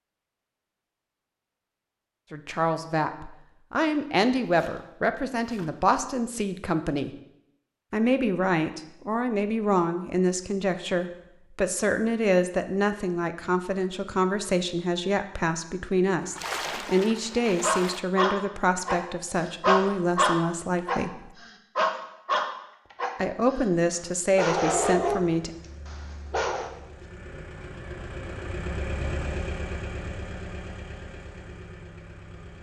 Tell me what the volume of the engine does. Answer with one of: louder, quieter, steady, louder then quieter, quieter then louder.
louder then quieter.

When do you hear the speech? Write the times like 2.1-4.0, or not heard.
2.3-7.2, 7.9-21.3, 23.1-25.5.